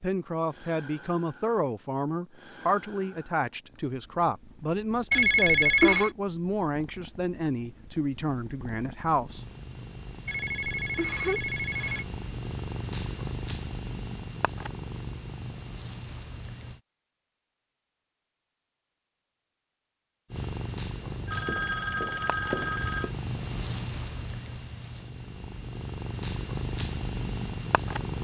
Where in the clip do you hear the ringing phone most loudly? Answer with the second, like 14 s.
6 s.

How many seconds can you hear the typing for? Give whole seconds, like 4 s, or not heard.
not heard.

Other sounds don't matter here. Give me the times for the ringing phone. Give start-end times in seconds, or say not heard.
5.1-6.1, 10.2-12.1, 21.0-23.1.